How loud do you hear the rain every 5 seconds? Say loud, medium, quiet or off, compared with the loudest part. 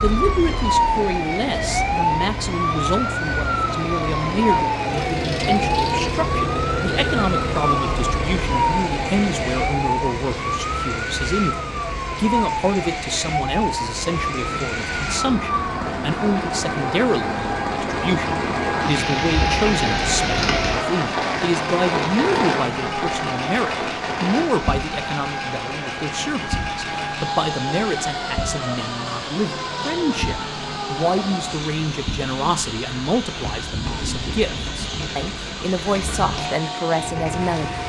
medium, medium, medium, loud, loud, medium, medium, medium.